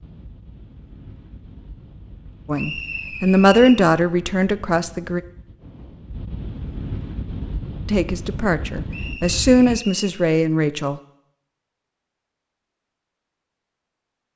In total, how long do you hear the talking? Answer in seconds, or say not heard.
6 s.